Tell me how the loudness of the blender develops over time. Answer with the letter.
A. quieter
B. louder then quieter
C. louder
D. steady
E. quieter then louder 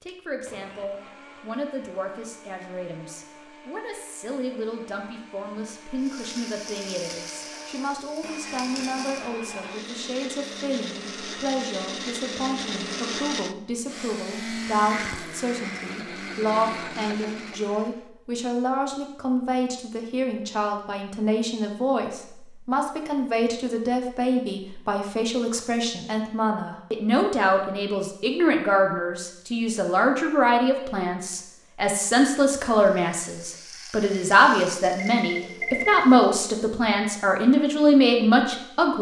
C.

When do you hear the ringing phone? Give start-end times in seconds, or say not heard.
35.0-36.1.